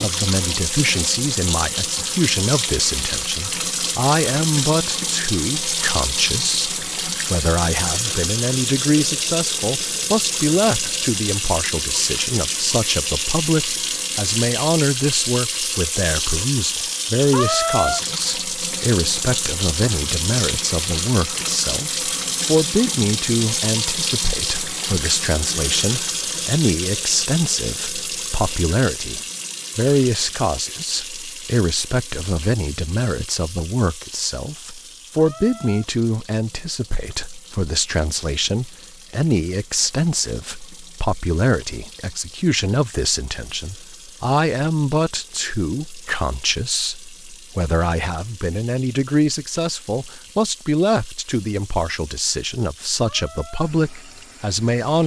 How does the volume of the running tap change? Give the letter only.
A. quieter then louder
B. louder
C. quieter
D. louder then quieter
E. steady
C.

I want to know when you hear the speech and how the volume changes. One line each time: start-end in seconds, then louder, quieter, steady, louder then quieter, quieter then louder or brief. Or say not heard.
0.0-55.0 steady.